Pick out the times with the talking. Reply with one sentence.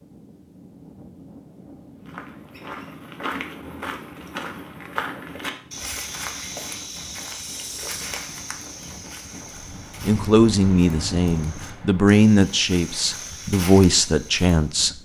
You can hear the talking from 10.1 to 14.9 s.